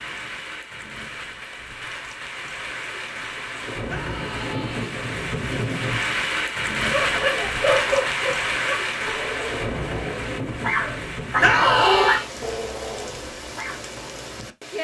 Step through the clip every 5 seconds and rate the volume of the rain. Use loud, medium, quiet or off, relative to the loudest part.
medium, loud, medium.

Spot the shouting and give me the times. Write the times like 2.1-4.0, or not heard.
3.9-5.0, 11.4-12.2.